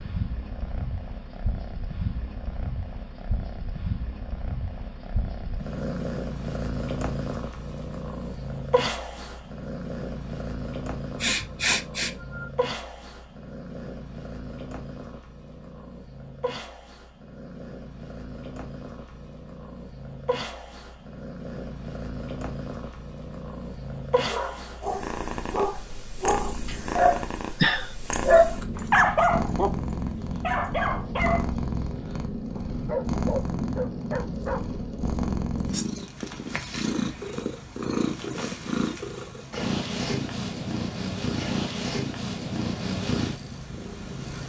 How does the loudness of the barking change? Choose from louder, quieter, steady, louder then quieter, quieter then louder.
louder then quieter.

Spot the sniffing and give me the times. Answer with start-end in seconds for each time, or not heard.
11.2-12.5.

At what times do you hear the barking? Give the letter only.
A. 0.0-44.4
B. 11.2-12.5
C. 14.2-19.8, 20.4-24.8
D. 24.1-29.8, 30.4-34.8
D.